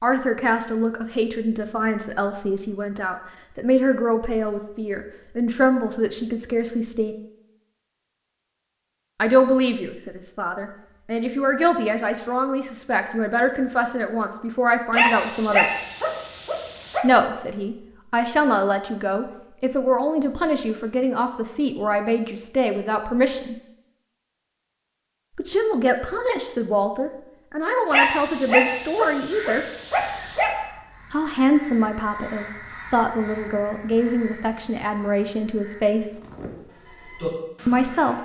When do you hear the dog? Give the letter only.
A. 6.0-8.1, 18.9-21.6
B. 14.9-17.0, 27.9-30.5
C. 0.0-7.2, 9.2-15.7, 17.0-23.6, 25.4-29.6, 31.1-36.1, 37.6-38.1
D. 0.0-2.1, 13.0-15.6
B.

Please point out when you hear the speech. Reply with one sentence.
The speech can be heard from 0.0 to 7.2 s, from 9.2 to 15.7 s, from 17.0 to 23.6 s, from 25.4 to 29.6 s, from 31.1 to 36.1 s and from 37.6 to 38.1 s.